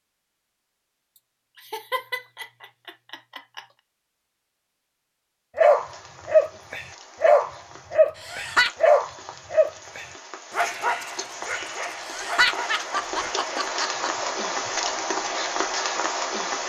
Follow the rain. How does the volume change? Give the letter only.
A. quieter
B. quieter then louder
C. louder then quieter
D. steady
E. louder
E.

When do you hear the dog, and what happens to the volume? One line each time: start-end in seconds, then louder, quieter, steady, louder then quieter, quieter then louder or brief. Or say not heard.
5.5-15.3 quieter.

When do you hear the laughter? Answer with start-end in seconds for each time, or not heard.
1.6-3.6, 8.2-8.7, 11.9-14.3.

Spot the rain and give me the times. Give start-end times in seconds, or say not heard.
5.5-16.6.